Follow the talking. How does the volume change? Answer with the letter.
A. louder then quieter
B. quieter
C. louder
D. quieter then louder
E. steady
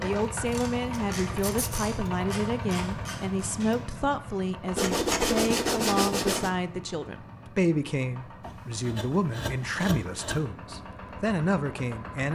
E.